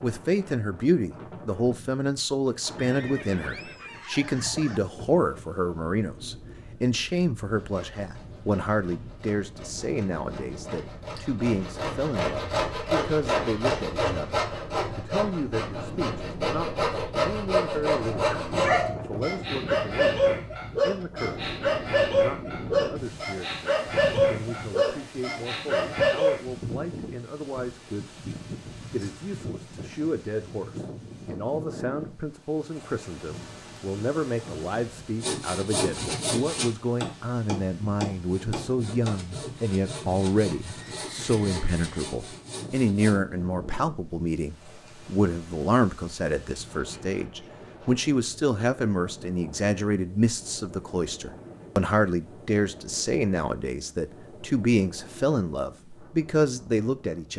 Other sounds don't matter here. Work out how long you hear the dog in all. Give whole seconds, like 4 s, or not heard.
8 s.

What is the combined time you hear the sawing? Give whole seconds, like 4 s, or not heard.
19 s.